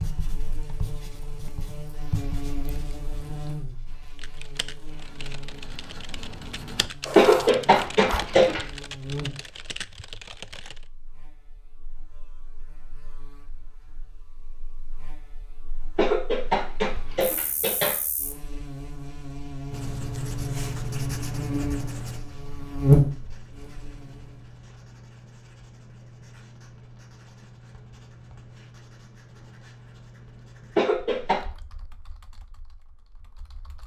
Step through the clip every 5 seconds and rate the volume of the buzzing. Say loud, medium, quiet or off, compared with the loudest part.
quiet, quiet, quiet, quiet, loud, off, off.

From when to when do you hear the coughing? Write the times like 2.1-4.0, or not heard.
7.2-8.6, 15.9-17.9, 30.8-31.4.